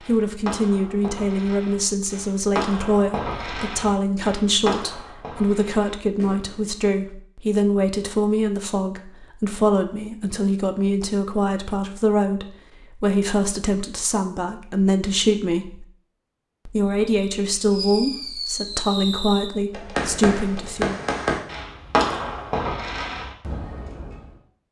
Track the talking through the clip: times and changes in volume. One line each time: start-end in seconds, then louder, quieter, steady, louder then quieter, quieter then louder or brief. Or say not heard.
0.1-15.8 steady
16.6-21.0 steady.